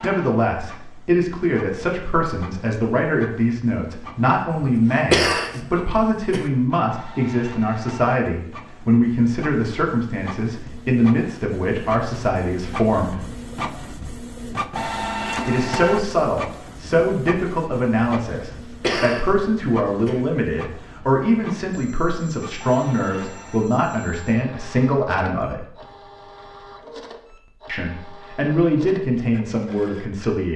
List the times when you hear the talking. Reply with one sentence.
The talking can be heard from 0.0 to 13.2 s, from 15.4 to 25.6 s and from 27.6 to 30.5 s.